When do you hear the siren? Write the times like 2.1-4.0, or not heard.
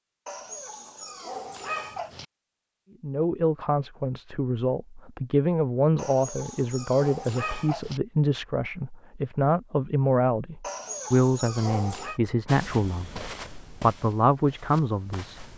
not heard.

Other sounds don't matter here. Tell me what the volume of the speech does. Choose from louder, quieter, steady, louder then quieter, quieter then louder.
steady.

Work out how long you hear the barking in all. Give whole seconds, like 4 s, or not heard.
6 s.